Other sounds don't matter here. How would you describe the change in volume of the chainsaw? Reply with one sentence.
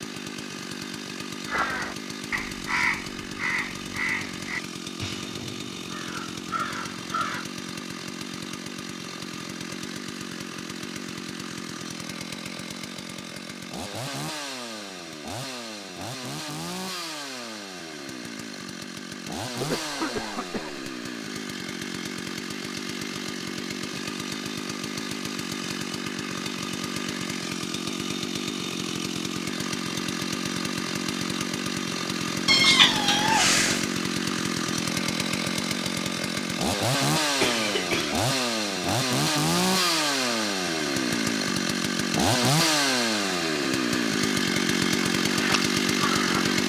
The loudness of the chainsaw goes up.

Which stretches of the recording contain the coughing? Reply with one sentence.
You can hear the coughing from 19.6 to 20.8 s and from 37.4 to 38.2 s.